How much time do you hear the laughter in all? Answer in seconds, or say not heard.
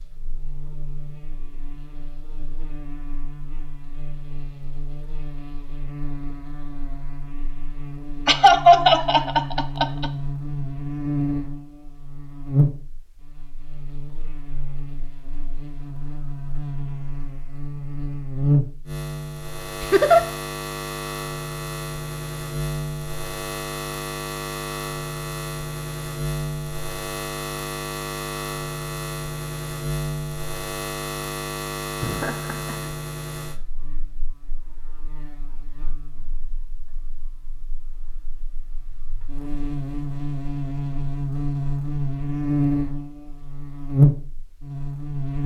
3 s.